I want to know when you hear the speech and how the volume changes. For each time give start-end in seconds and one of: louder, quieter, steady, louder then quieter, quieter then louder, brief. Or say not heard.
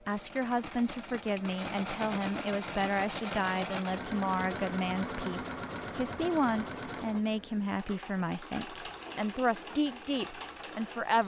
0.1-11.2 steady.